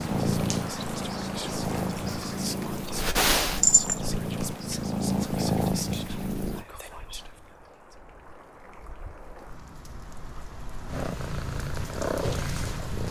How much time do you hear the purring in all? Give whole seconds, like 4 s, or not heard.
9 s.